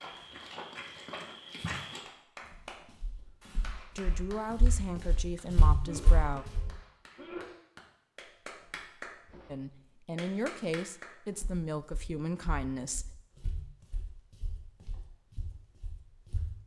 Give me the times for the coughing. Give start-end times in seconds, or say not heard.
5.8-7.5.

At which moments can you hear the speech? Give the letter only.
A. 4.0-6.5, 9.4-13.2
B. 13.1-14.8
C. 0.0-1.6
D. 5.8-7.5
A.